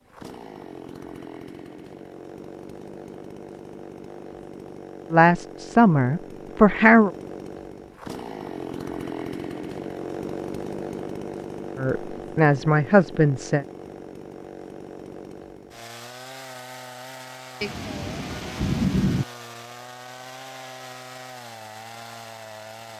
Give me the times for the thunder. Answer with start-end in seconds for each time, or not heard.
17.6-19.2.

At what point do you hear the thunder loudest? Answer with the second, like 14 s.
19 s.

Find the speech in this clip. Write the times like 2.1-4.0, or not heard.
5.1-7.1, 11.8-13.7.